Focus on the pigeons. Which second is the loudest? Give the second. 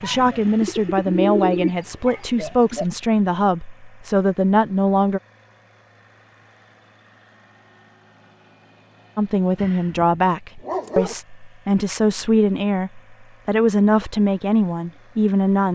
1 s.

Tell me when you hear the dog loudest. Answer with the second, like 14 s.
11 s.